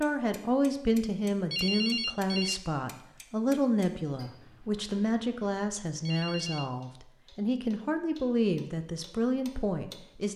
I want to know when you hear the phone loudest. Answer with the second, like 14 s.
2 s.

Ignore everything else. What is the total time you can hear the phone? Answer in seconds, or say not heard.
2 s.